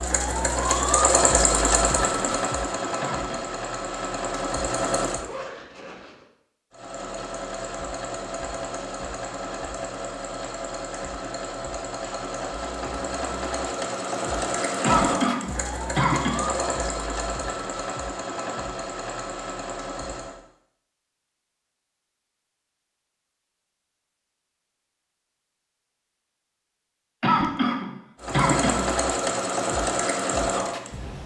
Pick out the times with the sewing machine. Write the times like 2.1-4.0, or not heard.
0.0-5.3, 6.7-20.4, 28.2-31.2.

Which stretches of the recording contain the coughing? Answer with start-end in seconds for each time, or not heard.
1.9-3.5, 14.8-16.5, 27.2-28.9.